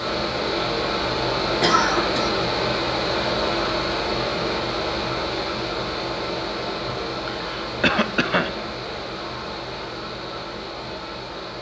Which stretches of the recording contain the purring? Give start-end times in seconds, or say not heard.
not heard.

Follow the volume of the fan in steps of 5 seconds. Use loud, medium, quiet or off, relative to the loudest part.
loud, medium, medium.